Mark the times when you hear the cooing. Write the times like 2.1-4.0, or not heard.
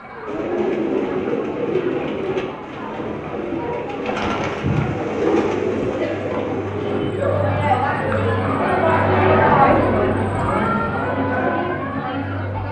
0.2-7.2.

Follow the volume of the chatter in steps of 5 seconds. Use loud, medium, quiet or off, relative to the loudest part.
quiet, loud, loud.